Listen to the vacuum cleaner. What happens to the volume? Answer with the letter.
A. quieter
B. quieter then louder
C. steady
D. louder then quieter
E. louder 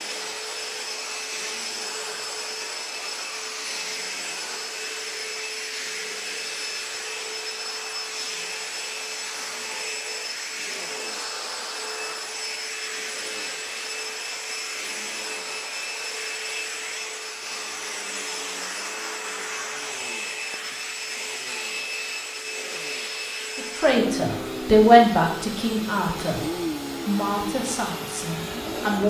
C.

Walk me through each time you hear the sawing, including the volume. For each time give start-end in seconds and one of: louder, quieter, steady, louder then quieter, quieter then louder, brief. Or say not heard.
not heard.